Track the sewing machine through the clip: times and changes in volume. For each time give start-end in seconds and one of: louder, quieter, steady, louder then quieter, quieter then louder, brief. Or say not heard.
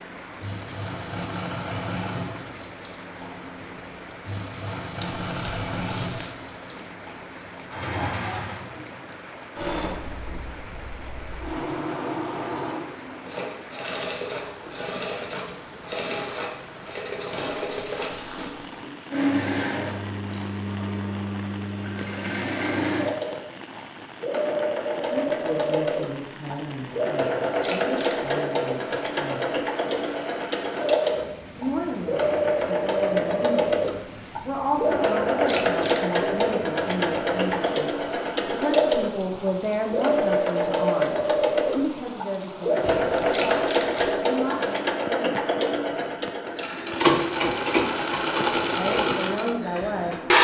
0.0-50.3 louder.